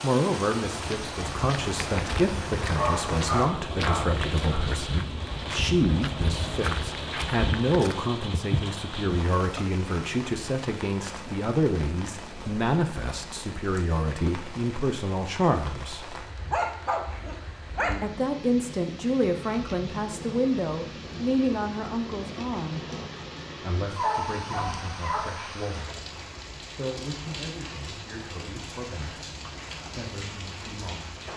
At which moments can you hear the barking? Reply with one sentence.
You can hear the barking from 2.8 to 4.6 s, from 16.5 to 18.0 s and from 23.9 to 25.5 s.